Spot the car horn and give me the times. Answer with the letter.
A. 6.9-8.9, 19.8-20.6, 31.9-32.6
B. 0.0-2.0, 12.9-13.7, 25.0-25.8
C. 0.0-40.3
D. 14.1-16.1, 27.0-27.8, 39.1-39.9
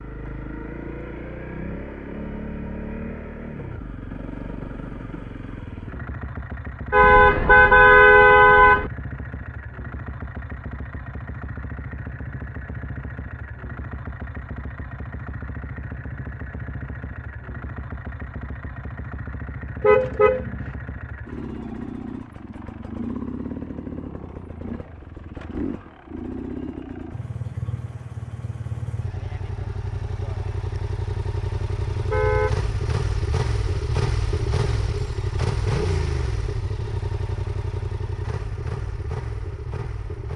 A.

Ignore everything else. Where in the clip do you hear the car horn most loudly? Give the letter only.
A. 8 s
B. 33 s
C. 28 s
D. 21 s
A.